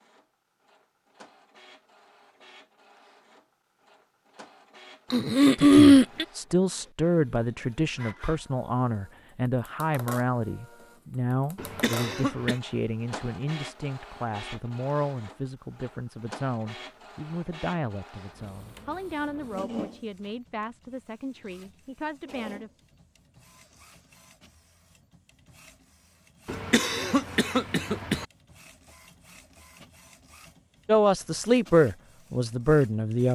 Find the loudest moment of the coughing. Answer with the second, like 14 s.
6 s.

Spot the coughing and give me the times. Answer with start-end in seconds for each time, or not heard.
5.1-6.2, 11.6-12.6, 26.4-28.2.